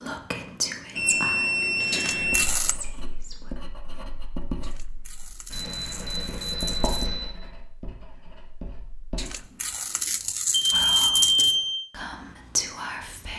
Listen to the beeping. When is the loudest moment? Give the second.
11 s.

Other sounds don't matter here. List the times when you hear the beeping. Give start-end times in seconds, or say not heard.
0.9-2.5, 5.5-7.3, 10.5-11.8.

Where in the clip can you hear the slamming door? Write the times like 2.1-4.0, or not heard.
not heard.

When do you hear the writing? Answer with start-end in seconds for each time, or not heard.
2.1-9.4.